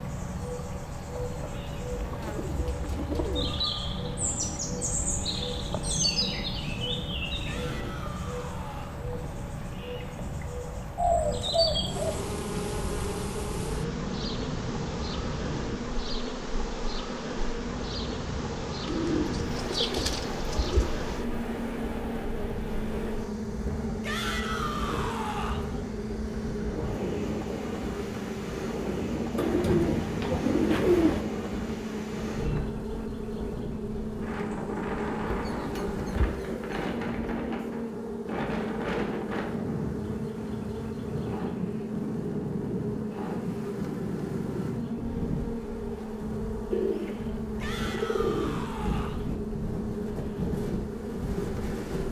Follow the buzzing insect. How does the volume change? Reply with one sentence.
The volume of the buzzing insect stays about the same.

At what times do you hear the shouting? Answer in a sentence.
The shouting can be heard from 7.4 to 9.0 s, from 24.0 to 25.6 s and from 47.6 to 49.2 s.